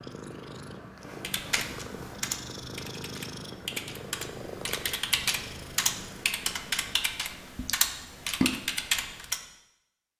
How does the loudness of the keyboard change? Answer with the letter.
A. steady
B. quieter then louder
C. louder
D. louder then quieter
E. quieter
C.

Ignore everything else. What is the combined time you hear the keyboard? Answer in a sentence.
You can hear the keyboard for 8 seconds altogether.